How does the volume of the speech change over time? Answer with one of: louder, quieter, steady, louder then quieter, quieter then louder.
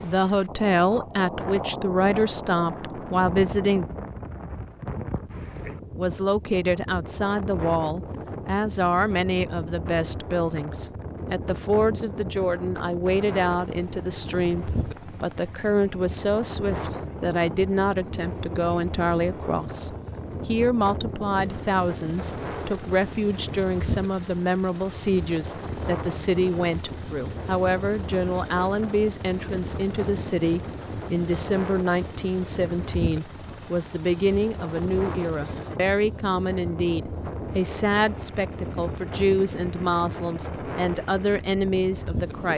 steady.